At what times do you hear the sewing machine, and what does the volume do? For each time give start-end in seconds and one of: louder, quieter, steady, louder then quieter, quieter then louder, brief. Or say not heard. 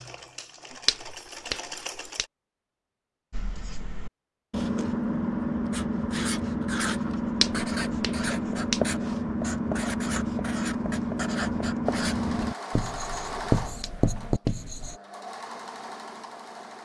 0.0-2.3 brief
11.8-16.8 quieter then louder.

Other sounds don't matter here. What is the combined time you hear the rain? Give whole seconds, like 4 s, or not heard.
not heard.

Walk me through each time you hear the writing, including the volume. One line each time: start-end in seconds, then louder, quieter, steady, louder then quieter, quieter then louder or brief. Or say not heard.
3.3-15.0 steady.